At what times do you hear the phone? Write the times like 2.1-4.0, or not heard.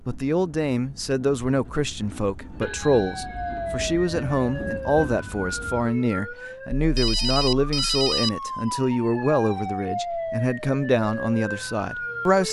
2.6-3.9, 6.8-8.3.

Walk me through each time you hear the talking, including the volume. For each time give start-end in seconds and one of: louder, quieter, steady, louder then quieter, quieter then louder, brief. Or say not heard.
0.1-12.4 steady.